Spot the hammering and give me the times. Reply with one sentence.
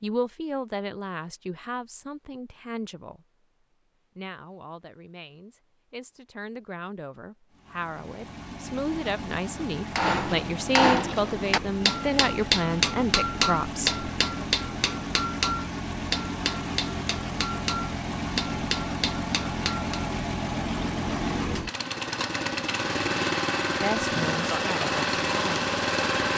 You can hear the hammering from 9.9 to 20.1 s.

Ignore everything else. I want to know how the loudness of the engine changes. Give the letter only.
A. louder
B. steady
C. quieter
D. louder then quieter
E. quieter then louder
A.